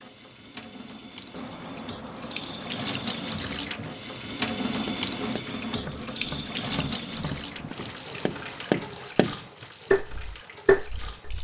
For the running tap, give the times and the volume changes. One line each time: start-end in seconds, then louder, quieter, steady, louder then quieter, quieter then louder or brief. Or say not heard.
0.0-11.3 louder then quieter.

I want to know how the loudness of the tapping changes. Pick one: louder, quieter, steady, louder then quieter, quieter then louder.
louder.